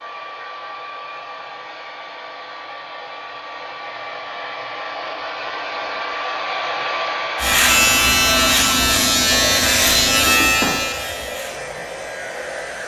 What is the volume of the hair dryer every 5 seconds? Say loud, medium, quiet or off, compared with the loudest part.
medium, loud, medium.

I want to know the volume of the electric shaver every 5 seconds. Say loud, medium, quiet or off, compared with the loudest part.
off, loud, medium.